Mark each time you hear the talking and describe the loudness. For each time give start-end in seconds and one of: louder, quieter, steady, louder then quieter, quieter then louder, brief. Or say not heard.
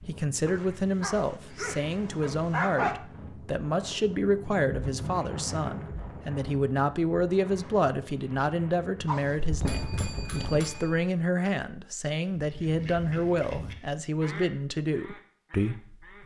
0.1-16.2 steady.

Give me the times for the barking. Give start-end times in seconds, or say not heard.
0.5-3.0, 9.1-10.7.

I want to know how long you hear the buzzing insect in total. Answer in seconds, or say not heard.
not heard.